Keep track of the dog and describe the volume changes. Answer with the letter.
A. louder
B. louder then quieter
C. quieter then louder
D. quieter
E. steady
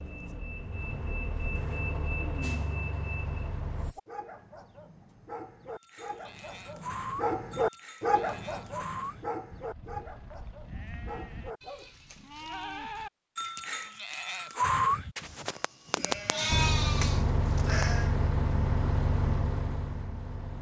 B.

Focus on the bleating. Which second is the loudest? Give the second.
15 s.